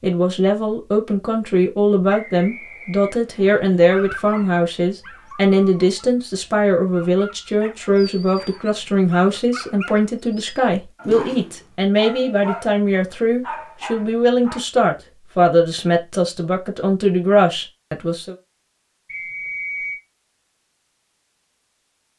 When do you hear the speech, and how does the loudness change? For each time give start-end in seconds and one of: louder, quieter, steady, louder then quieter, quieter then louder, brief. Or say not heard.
0.0-18.4 steady.